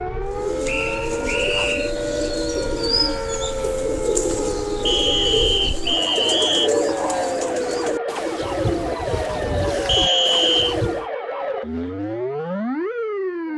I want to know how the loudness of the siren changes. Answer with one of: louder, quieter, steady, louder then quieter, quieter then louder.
steady.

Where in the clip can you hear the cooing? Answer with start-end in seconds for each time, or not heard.
0.2-11.1.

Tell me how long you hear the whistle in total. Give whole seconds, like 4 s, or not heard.
4 s.